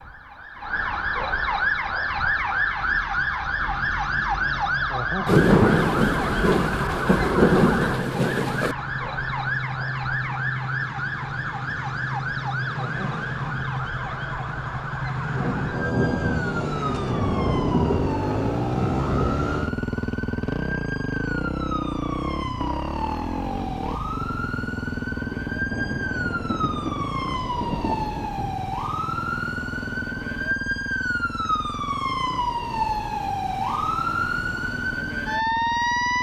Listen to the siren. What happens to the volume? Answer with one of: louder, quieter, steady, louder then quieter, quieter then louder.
quieter then louder.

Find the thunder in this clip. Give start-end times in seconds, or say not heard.
5.2-8.8, 15.3-19.7, 25.6-28.7.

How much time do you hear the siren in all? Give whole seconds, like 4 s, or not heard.
36 s.